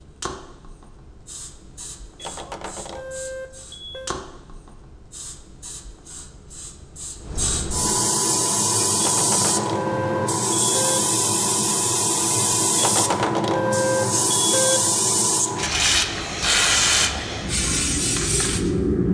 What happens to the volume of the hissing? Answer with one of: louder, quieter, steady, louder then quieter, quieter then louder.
louder.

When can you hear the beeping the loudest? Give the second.
14 s.